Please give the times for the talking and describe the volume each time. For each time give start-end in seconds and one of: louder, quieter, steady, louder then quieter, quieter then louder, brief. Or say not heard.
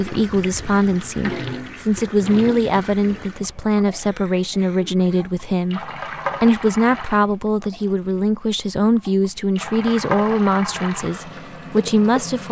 0.0-12.4 steady.